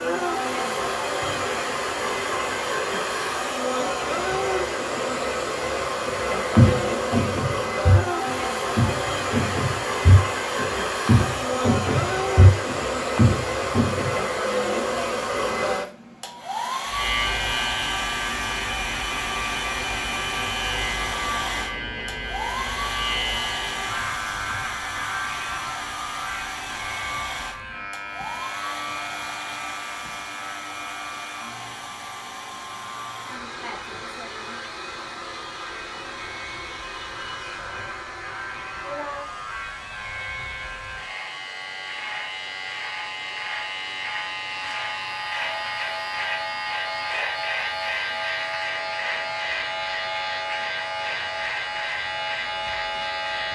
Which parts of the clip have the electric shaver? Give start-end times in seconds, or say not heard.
16.9-53.4.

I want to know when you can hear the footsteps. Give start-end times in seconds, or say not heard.
6.0-14.2.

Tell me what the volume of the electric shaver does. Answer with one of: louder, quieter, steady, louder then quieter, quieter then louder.
quieter then louder.